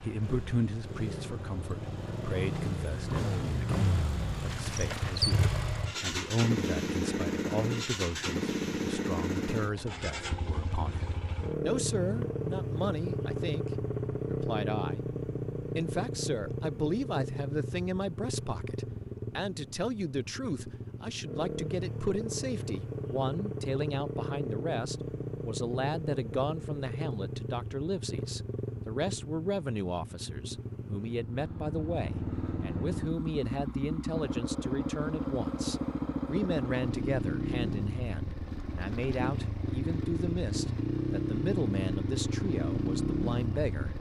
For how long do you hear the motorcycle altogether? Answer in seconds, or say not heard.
44 s.